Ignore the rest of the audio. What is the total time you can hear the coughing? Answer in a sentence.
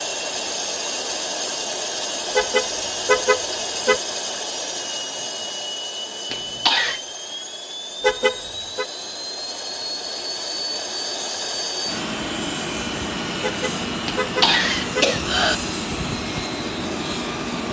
You can hear the coughing for 2 seconds altogether.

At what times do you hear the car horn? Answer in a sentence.
The car horn can be heard from 2.4 to 4.0 s, from 8.0 to 8.8 s and from 13.4 to 15.1 s.